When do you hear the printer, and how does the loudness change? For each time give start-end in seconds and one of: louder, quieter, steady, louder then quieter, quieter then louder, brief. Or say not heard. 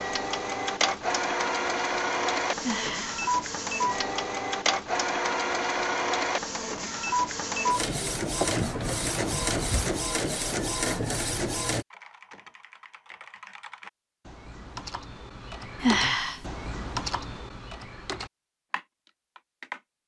0.0-11.8 steady.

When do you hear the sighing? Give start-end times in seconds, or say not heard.
2.6-3.2, 8.3-10.0, 15.8-16.4.